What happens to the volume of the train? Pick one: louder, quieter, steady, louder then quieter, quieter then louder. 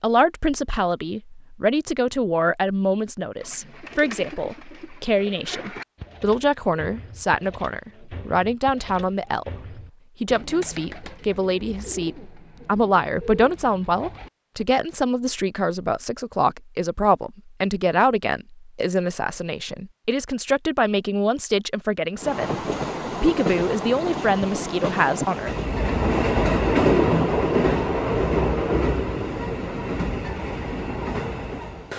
louder then quieter.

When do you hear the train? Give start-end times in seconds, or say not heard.
22.2-31.9.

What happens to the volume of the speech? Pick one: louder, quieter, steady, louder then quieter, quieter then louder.
steady.